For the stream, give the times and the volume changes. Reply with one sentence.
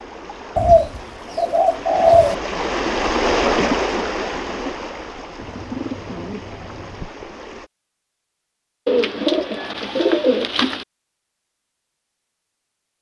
The stream can be heard from 0.0 to 7.7 s, getting louder then quieter.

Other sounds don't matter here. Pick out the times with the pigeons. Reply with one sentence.
You can hear the pigeons from 0.6 to 2.4 s, from 5.3 to 7.1 s and from 8.8 to 10.8 s.